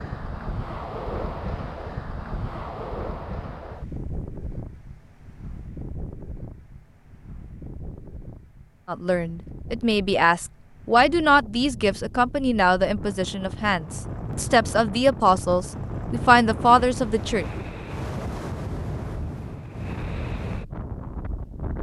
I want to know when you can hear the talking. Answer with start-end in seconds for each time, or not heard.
8.8-17.4.